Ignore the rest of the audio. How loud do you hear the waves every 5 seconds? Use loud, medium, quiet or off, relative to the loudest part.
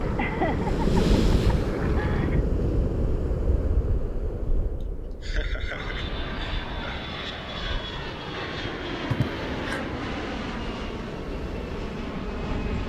loud, quiet, medium.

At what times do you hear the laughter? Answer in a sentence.
The laughter can be heard from 0.1 to 2.4 s, from 4.8 to 7.0 s and from 9.1 to 9.8 s.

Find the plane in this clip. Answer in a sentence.
The plane can be heard from 0.0 to 2.4 s and from 5.7 to 12.8 s.